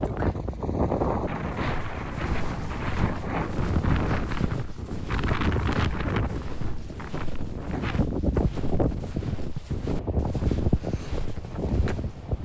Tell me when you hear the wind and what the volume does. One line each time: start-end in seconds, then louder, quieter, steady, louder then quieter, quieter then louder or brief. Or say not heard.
0.0-12.4 steady.